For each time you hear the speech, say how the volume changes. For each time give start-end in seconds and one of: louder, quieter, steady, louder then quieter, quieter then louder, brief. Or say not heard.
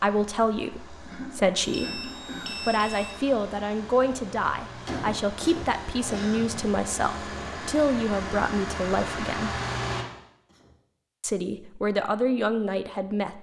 0.0-9.6 steady
11.2-13.3 brief.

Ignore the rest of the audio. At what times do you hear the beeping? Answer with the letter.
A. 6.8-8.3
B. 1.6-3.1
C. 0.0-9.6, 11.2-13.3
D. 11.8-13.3
B.